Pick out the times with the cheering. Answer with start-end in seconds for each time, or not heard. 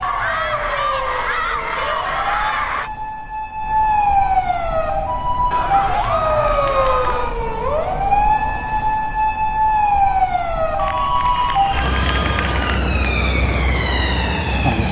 0.0-2.9, 5.5-7.3, 10.8-12.8.